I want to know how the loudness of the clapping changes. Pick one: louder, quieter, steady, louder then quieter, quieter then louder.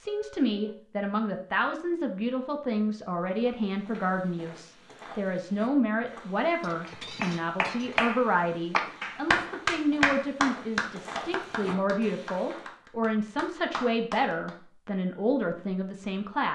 quieter.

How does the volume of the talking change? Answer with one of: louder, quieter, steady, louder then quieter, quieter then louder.
steady.